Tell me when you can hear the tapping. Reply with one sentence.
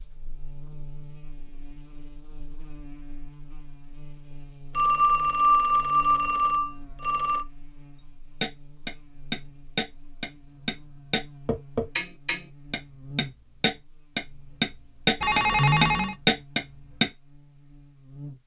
The tapping can be heard from 8.4 to 17.1 s.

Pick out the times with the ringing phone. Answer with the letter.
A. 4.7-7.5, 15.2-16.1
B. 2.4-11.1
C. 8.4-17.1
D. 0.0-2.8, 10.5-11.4
A.